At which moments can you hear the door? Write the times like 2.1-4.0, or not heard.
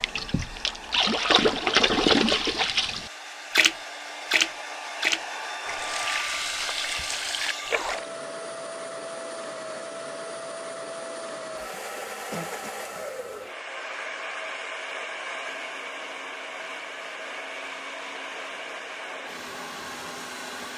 not heard.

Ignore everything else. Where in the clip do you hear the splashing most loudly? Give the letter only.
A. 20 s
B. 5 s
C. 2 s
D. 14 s
C.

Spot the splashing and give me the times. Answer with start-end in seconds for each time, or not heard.
0.0-8.1.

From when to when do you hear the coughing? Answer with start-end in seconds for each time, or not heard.
11.9-12.7.